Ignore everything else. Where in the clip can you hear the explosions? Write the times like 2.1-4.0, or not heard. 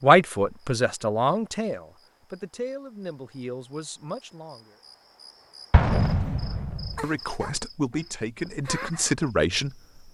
5.7-7.0.